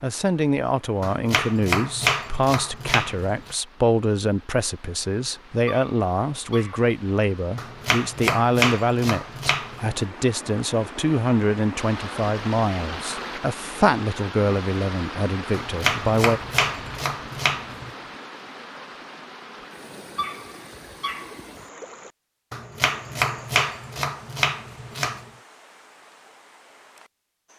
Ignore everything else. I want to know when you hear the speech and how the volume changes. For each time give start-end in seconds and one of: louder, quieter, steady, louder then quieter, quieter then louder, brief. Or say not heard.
0.0-16.4 steady.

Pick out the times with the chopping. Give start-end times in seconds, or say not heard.
1.0-3.5, 7.5-9.9, 15.5-17.9, 22.5-25.2.